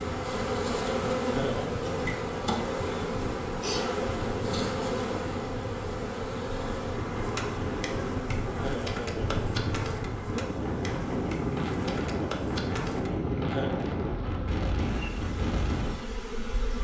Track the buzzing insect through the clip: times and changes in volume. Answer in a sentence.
You can hear the buzzing insect from 0.0 to 16.7 s, getting quieter.